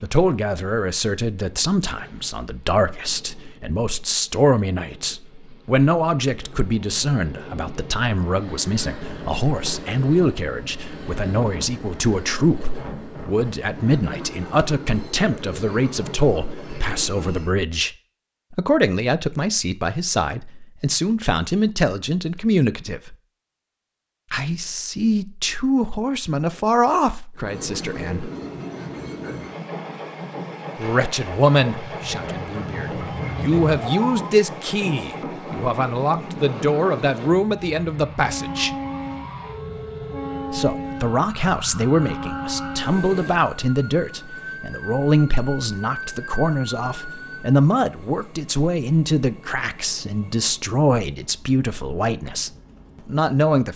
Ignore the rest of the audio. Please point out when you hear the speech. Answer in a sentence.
You can hear the speech from 0.0 to 17.9 s, from 18.5 to 23.1 s, from 24.3 to 28.3 s, from 30.8 to 38.7 s and from 40.5 to 53.7 s.